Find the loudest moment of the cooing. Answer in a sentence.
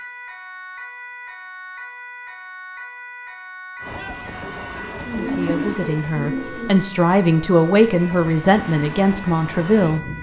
The volume of the cooing peaks at 5 seconds.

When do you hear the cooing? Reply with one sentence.
You can hear the cooing from 4.8 to 6.8 s.